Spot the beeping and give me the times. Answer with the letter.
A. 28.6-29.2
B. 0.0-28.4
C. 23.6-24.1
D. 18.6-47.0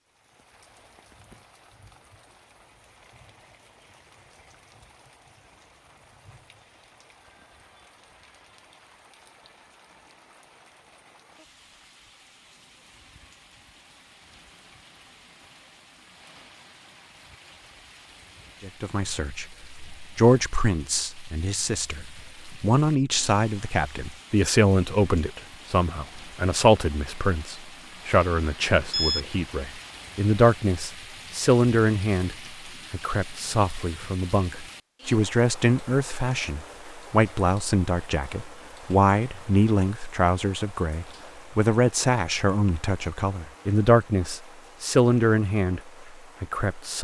A.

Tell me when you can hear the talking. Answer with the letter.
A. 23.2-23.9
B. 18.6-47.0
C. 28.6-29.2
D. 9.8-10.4
B.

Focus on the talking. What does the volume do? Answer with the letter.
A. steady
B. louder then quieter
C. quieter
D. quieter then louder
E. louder
A.